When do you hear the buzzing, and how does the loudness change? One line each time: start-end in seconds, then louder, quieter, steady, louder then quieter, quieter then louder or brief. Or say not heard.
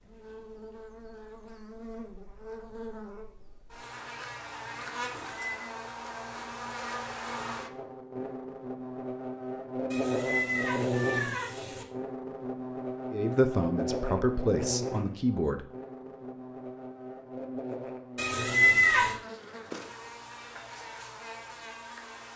0.0-22.3 louder then quieter.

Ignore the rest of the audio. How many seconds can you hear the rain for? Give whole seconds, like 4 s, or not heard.
not heard.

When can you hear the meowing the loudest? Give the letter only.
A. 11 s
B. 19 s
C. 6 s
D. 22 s
B.